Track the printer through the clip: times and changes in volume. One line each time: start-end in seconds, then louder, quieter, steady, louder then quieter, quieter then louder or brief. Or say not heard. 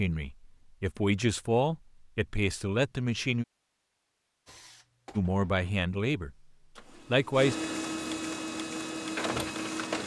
4.5-10.0 quieter then louder.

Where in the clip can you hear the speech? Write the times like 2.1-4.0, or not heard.
0.0-3.5, 5.2-6.3, 7.1-7.5.